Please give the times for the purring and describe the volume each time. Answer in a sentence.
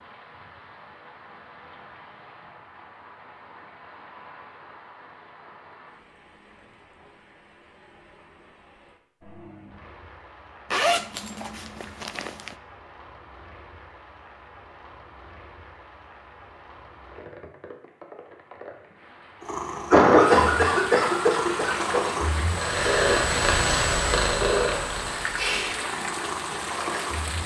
You can hear the purring from 19.4 to 27.4 s, getting louder then quieter.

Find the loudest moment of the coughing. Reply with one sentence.
The volume of the coughing peaks at 20 seconds.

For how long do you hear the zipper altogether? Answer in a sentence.
The zipper can be heard for 2 seconds in total.